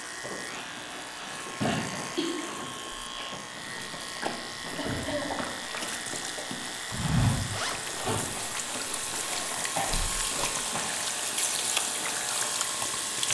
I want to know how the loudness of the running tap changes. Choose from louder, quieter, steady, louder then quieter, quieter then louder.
louder.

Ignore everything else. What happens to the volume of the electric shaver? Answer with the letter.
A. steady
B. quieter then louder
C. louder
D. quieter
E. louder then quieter
A.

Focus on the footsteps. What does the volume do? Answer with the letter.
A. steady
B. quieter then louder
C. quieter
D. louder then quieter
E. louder
D.